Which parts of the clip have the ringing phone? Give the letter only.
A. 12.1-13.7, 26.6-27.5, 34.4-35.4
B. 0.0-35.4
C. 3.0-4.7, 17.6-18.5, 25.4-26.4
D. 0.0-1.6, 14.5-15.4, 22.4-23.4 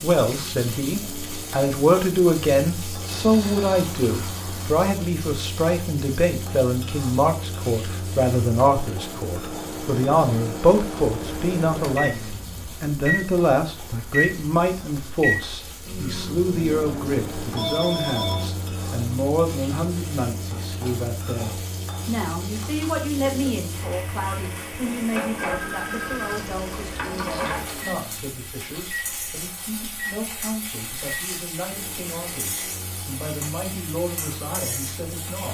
C.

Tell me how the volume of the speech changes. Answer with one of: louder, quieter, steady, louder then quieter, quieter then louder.
quieter.